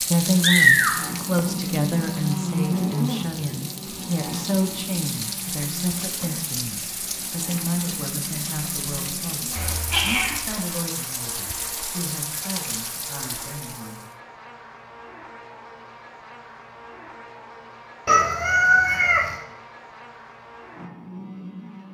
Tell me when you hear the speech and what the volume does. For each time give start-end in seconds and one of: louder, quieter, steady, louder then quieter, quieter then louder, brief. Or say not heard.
0.1-14.1 quieter.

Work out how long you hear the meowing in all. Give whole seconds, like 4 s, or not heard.
3 s.